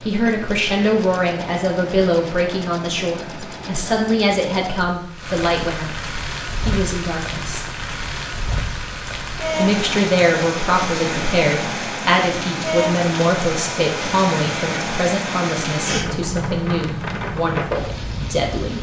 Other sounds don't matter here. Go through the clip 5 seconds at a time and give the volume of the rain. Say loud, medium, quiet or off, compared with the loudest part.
quiet, loud, loud, loud.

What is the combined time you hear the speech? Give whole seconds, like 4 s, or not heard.
17 s.